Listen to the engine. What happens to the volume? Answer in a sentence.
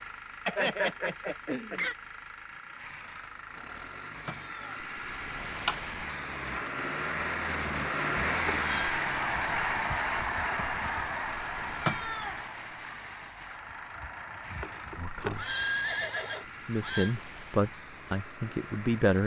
The volume of the engine goes up, then down.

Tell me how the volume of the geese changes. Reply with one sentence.
The loudness of the geese goes down.